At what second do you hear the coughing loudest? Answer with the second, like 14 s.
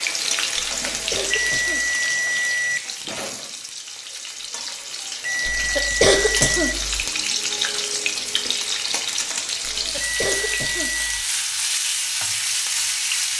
6 s.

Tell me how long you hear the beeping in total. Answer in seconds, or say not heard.
4 s.